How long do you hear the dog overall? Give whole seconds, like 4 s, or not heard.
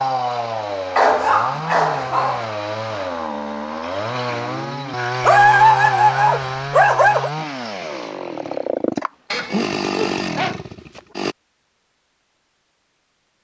5 s.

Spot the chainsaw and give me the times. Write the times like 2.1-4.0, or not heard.
0.0-11.3.